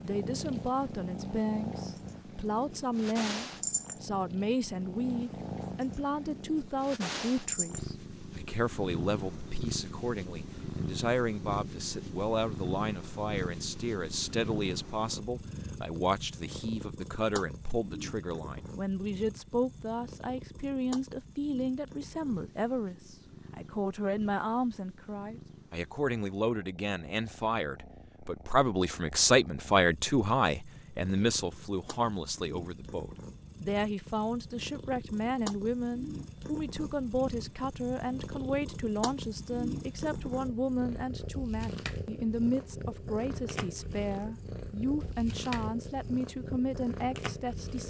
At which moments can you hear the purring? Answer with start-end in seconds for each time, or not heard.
0.0-47.8.